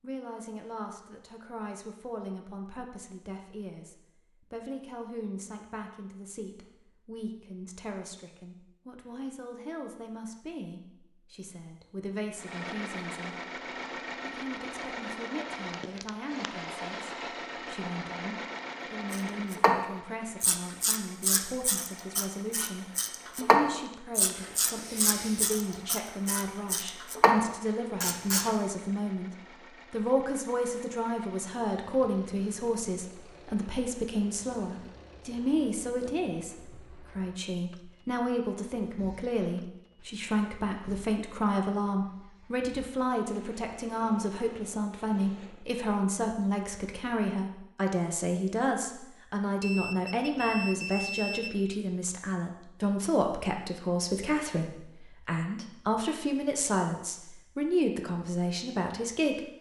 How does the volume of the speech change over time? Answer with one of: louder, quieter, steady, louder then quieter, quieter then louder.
louder.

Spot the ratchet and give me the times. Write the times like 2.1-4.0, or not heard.
19.1-28.5.